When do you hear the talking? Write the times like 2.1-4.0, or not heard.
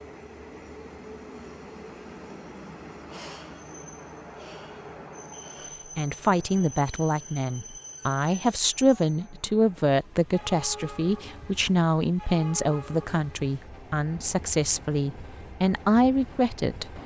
6.0-17.0.